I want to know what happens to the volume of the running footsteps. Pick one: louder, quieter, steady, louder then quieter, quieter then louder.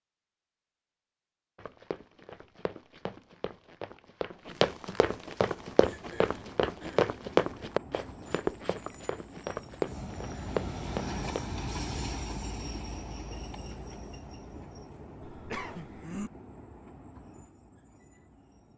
louder then quieter.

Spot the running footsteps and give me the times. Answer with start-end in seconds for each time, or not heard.
1.6-11.4.